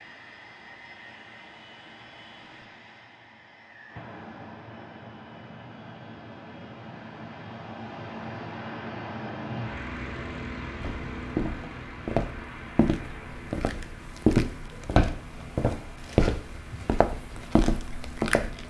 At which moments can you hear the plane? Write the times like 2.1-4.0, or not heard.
0.0-18.6.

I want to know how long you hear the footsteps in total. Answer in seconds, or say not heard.
8 s.